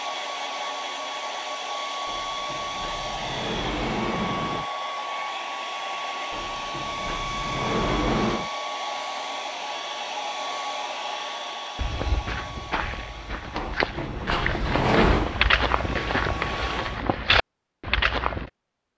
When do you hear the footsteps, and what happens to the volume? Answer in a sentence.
You can hear the footsteps from 11.8 to 18.4 s, getting louder.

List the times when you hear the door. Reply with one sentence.
You can hear the door from 2.0 to 4.7 s, from 6.3 to 8.5 s and from 13.6 to 15.3 s.